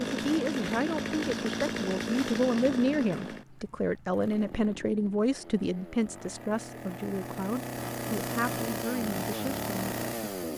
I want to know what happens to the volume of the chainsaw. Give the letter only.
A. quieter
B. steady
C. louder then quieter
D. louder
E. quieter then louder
E.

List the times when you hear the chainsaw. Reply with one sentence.
The chainsaw can be heard from 0.0 to 10.5 s.